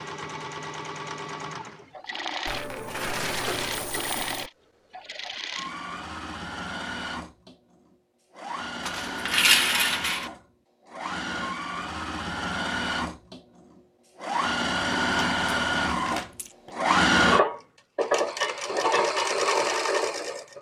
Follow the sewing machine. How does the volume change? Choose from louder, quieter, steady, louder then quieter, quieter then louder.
louder.